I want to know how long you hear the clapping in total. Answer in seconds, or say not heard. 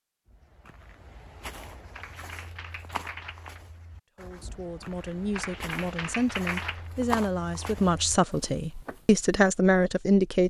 3 s.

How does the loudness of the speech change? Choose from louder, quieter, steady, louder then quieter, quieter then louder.
louder.